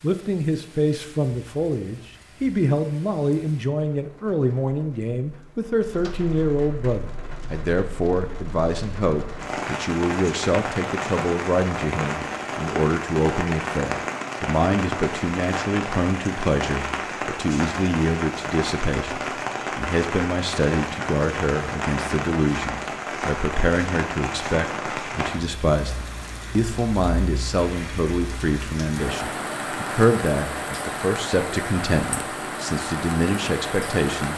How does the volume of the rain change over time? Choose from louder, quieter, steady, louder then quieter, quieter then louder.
louder.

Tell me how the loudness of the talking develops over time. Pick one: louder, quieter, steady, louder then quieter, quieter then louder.
steady.